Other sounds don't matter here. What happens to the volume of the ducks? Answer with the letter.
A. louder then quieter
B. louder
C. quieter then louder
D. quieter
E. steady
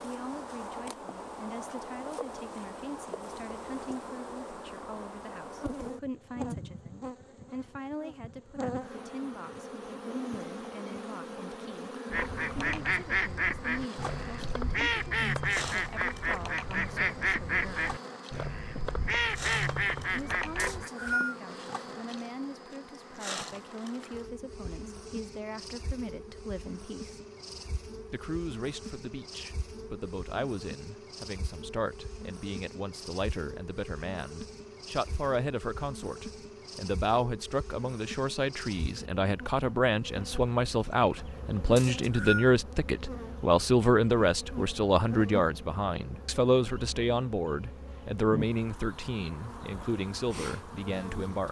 E.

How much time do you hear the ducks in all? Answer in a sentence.
The ducks can be heard for 9 seconds in total.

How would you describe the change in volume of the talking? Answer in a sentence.
The volume of the talking goes up.